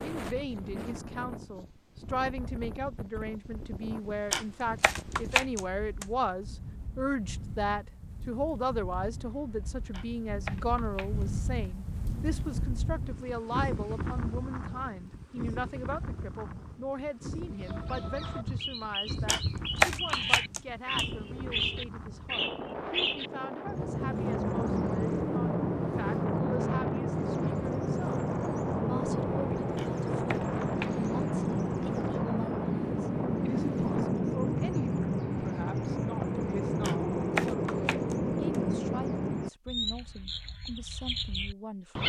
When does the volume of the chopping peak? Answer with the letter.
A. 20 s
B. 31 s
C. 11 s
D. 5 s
A.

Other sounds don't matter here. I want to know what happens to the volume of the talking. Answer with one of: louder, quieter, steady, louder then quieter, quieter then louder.
quieter.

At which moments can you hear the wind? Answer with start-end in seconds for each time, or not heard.
0.0-34.2.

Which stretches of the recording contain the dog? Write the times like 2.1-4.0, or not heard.
not heard.